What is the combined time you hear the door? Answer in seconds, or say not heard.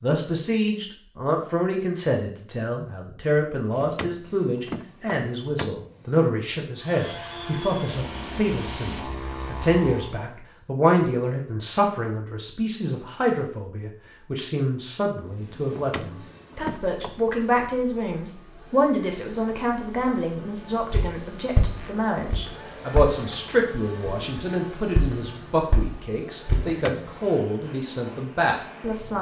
5 s.